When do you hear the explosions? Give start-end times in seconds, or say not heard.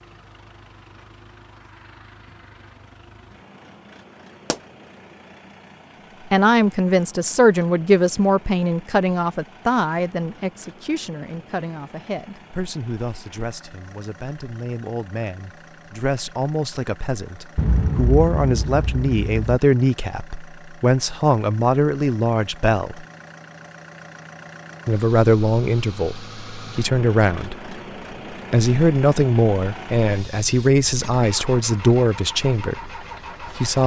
17.6-19.4.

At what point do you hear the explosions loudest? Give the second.
18 s.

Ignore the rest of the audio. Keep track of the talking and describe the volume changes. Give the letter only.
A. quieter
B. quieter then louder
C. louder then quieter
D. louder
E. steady
B.